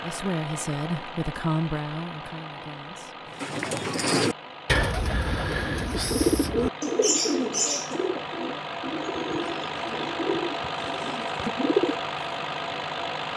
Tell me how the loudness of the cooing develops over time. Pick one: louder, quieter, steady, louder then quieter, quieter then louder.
quieter.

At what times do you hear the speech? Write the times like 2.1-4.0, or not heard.
0.0-3.4.